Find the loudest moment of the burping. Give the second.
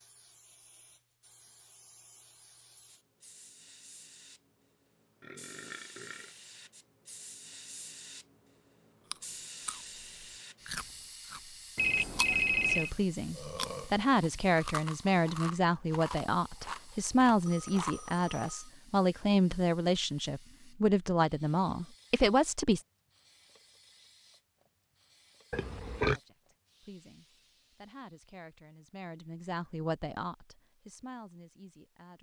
26 s.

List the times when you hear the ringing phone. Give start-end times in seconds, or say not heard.
11.8-12.9, 17.4-18.5.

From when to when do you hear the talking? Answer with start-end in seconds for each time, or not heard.
12.7-22.9, 26.1-32.1.